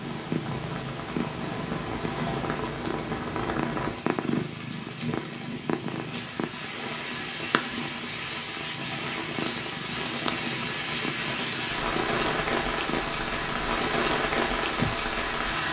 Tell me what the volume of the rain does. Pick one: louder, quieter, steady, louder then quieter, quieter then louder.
louder.